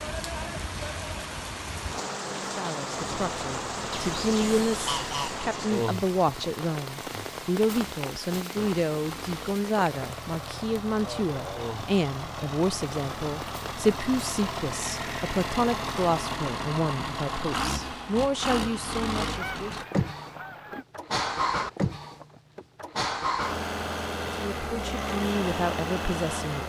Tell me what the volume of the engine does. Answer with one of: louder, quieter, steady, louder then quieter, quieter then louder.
louder.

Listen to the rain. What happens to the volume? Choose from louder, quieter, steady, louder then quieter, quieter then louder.
quieter.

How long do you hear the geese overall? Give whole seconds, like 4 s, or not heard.
4 s.